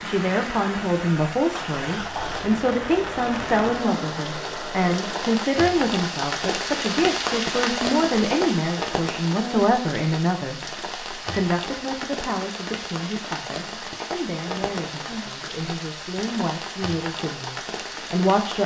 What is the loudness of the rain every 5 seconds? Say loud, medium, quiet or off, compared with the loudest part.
medium, loud, medium, medium.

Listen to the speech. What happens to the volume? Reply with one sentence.
The volume of the speech goes down.